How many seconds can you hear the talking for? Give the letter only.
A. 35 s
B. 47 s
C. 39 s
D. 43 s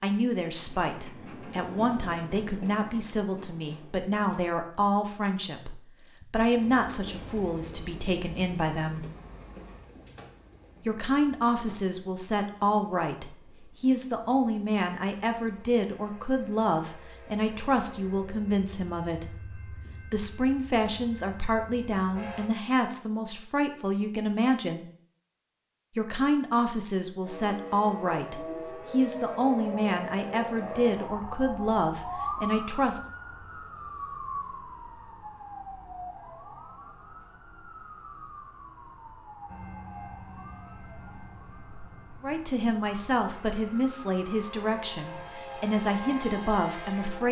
A.